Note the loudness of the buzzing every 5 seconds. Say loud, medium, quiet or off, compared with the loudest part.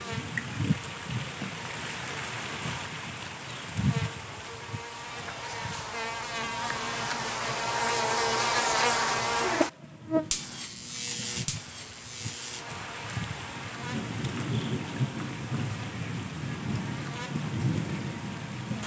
quiet, loud, medium, quiet.